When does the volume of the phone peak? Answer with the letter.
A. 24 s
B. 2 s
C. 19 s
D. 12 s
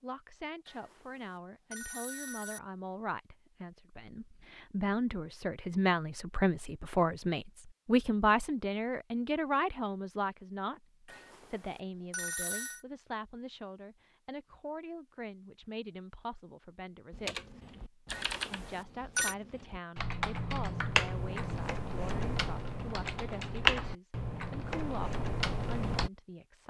C.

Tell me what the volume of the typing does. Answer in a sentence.
The loudness of the typing goes up, then down.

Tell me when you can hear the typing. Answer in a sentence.
The typing can be heard from 17.1 to 26.1 s.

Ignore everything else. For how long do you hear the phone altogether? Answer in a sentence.
The phone can be heard for 5 seconds in total.